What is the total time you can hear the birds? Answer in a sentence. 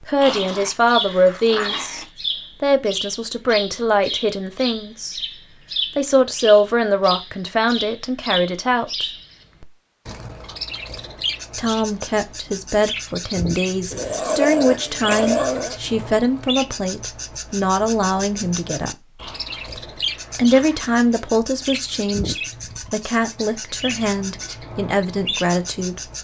The birds can be heard for 26 seconds in total.